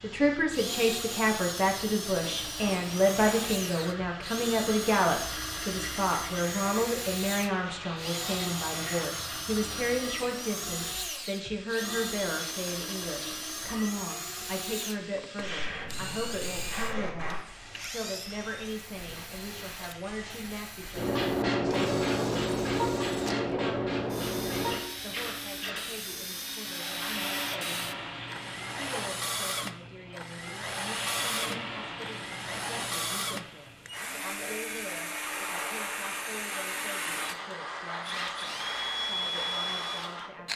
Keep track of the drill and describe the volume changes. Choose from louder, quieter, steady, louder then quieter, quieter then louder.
quieter then louder.